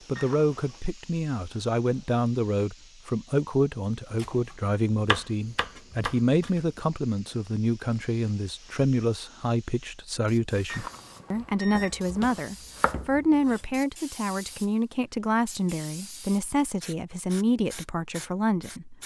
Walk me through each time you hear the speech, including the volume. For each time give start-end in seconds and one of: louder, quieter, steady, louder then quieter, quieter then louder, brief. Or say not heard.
0.1-18.9 steady.